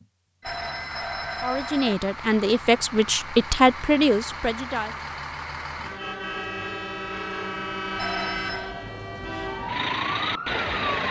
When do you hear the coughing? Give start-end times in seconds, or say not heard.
not heard.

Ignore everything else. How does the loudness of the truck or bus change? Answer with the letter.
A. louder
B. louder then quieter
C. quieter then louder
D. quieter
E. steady
A.